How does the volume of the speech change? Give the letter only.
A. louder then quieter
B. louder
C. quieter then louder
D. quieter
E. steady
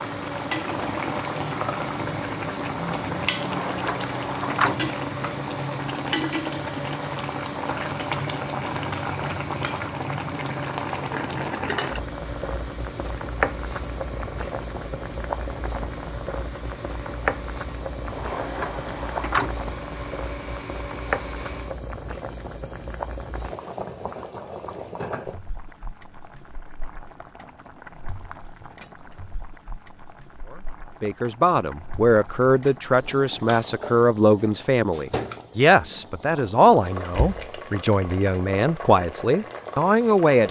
E.